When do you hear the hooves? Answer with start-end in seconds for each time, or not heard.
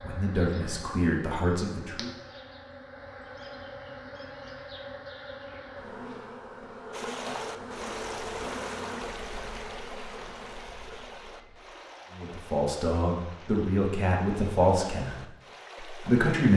not heard.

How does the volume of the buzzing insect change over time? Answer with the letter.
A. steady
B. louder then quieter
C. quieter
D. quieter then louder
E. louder
B.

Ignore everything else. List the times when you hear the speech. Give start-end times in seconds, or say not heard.
0.0-2.1, 12.2-15.2, 15.8-16.5.